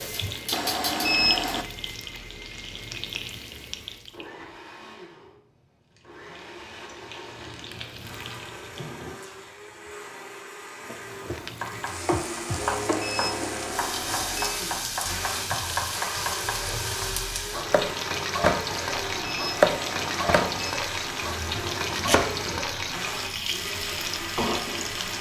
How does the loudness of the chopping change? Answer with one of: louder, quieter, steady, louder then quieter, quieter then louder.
louder then quieter.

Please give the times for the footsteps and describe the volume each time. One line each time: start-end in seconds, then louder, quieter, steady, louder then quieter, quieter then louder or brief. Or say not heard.
not heard.